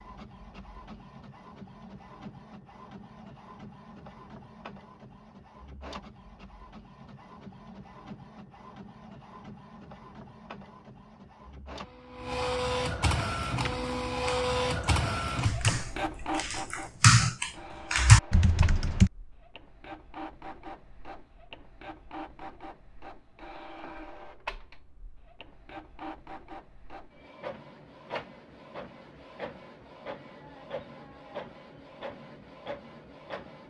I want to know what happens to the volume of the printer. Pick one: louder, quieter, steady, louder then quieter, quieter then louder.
louder then quieter.